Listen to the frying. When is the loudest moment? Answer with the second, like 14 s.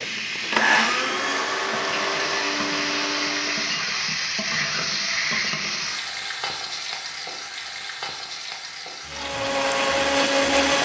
5 s.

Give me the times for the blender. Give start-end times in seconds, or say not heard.
0.0-3.8, 9.1-10.8.